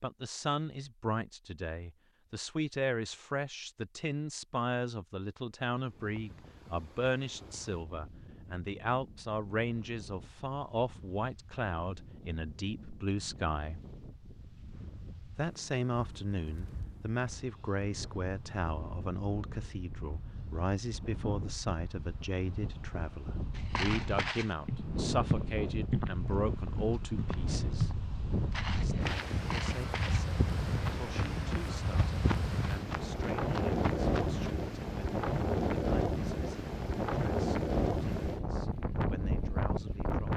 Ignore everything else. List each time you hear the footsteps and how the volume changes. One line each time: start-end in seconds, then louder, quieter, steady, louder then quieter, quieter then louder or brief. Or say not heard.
23.6-34.5 quieter.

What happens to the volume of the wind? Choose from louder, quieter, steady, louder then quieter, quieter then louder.
louder.